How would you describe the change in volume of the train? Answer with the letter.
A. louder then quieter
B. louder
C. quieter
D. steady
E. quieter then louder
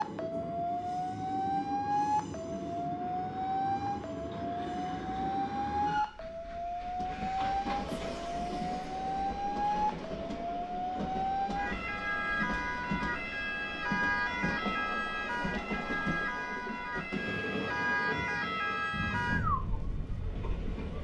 D.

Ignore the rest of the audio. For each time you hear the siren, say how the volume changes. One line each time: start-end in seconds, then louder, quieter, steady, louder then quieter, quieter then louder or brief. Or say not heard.
0.0-20.9 steady.